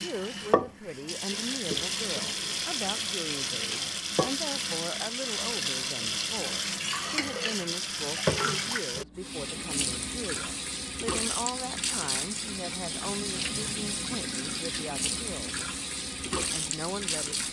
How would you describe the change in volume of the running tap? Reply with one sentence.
The loudness of the running tap stays about the same.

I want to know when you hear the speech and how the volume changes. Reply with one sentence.
You can hear the speech from 0.0 to 15.7 s, at a steady volume; and briefly from 16.4 to 17.4 s.